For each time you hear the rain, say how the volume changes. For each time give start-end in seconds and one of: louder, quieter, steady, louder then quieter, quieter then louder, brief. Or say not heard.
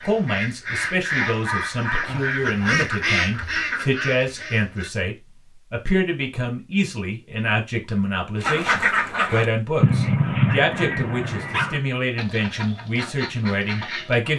not heard.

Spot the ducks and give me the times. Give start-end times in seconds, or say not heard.
0.0-4.9, 8.4-14.3.